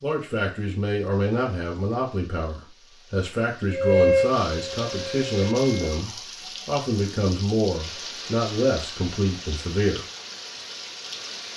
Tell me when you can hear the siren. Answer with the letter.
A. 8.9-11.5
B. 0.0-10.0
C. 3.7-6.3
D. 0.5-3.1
C.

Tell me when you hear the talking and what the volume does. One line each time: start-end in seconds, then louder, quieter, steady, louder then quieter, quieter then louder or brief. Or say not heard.
0.0-10.0 steady.